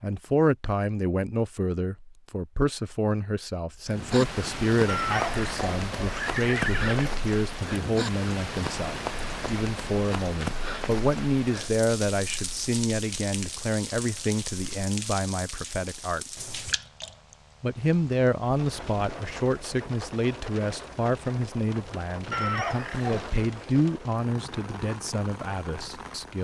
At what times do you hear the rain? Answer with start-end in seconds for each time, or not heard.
3.9-26.3.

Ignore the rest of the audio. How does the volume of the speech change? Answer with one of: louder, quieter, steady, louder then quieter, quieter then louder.
steady.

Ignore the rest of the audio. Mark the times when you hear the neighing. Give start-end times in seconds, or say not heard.
4.8-7.2, 22.3-23.4.